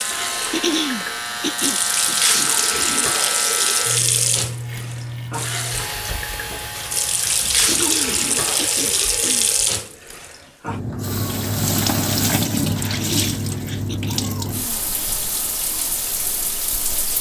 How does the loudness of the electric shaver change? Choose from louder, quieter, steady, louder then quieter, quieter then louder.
quieter.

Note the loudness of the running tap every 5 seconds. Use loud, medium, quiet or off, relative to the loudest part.
loud, loud, loud, medium.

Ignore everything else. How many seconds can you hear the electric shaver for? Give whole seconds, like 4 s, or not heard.
10 s.